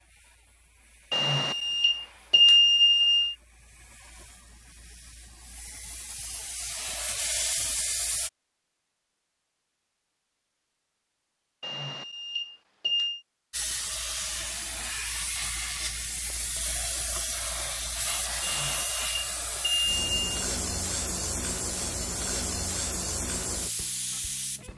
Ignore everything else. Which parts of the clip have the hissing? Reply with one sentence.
You can hear the hissing from 0.0 to 8.3 s and from 13.5 to 24.7 s.